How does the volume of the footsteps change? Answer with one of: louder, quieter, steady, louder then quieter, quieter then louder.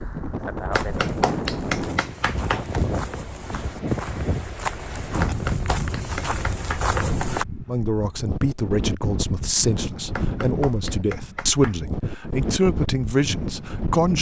louder.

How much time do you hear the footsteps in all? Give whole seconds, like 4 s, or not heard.
7 s.